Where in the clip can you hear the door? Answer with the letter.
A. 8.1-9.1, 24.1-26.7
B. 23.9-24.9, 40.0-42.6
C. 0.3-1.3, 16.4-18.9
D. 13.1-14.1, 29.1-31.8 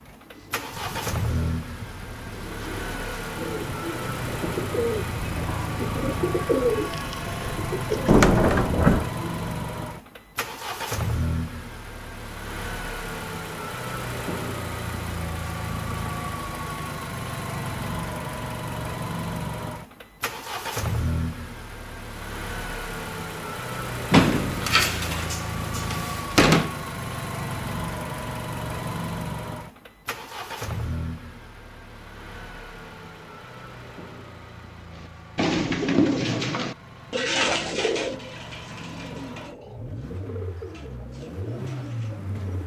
A.